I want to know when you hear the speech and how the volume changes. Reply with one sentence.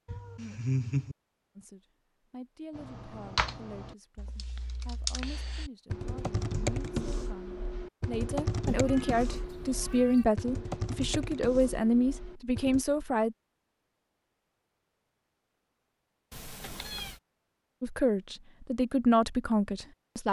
The speech can be heard from 1.6 to 13.3 s, getting louder; and briefly from 17.8 to 20.2 s.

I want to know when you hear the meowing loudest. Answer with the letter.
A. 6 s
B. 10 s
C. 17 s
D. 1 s
D.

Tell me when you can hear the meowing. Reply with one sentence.
You can hear the meowing from 0.1 to 1.1 s, from 8.7 to 10.2 s and from 16.3 to 17.2 s.